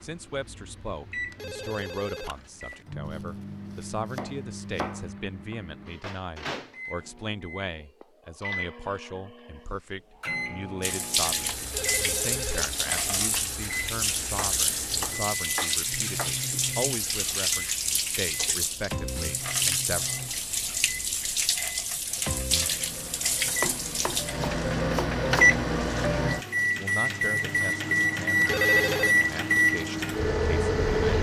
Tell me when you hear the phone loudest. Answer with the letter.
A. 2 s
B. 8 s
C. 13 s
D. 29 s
D.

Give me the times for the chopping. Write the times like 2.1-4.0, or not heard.
3.0-5.0, 14.3-16.3, 23.6-25.6.